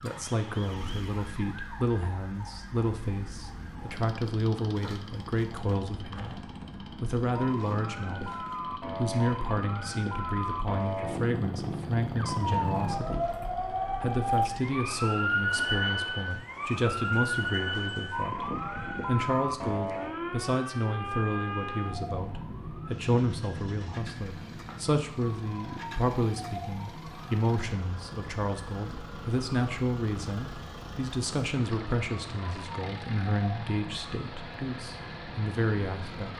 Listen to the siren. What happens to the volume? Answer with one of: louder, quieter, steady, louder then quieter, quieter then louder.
louder then quieter.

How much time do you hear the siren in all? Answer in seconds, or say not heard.
36 s.